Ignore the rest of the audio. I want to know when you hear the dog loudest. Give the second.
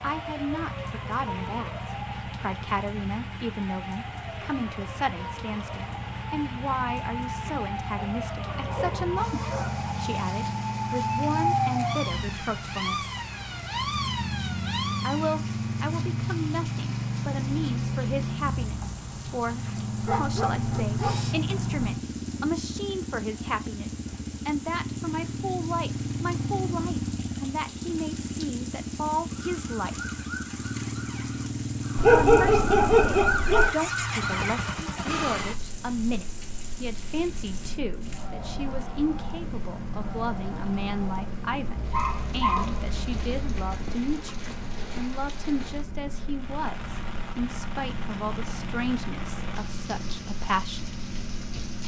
32 s.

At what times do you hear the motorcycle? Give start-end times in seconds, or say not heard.
0.0-51.8.